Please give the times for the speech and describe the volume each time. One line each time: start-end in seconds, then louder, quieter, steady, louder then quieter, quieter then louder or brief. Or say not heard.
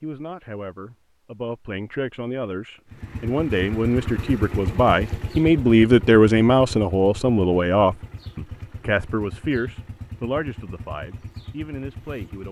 0.0-12.4 louder then quieter.